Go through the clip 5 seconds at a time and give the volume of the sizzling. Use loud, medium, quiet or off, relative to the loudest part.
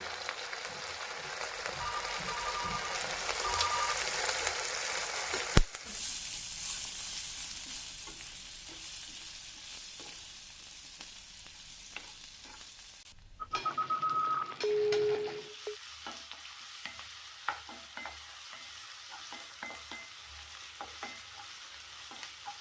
loud, loud, medium, medium, medium.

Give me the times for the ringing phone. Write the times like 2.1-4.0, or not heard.
1.8-4.0, 13.4-15.8.